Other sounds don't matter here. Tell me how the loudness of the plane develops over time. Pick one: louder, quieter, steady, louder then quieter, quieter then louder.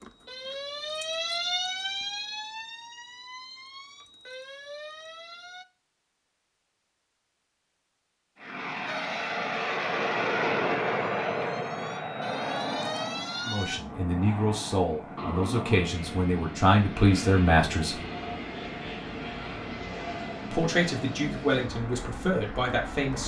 quieter.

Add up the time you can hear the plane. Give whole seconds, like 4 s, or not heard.
15 s.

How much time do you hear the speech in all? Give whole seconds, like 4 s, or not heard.
7 s.